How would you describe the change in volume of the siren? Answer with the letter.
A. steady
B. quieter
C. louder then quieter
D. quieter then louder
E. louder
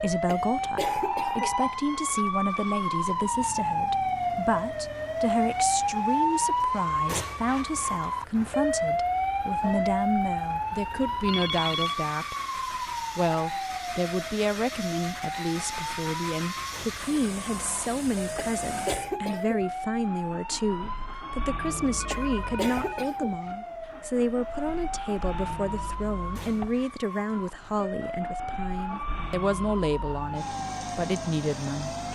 B.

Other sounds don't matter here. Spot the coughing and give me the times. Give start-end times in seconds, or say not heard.
0.2-1.6, 18.4-19.6, 22.1-23.4.